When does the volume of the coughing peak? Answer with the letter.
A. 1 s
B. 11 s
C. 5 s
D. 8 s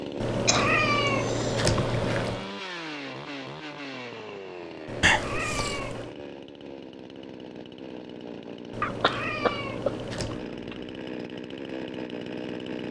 C.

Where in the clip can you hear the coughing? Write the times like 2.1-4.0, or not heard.
0.5-1.7, 5.0-6.0, 8.8-10.8.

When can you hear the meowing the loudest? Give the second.
1 s.